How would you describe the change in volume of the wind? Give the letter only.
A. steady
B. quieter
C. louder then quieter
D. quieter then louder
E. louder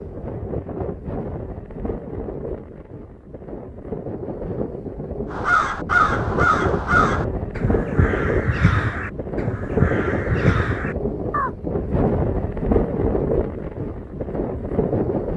E.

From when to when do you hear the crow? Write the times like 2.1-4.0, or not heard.
5.3-11.5.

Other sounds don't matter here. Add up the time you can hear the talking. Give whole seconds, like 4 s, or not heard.
not heard.